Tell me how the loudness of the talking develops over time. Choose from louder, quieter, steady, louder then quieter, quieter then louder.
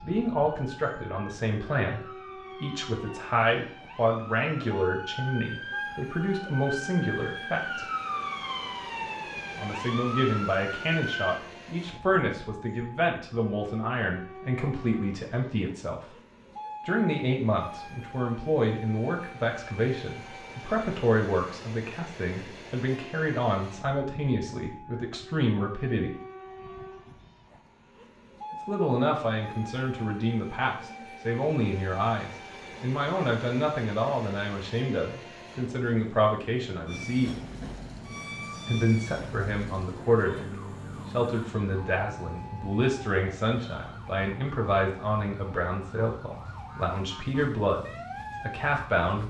steady.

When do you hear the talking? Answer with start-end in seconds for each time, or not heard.
0.0-7.8, 9.6-16.1, 16.9-26.1, 28.5-37.4, 38.6-49.2.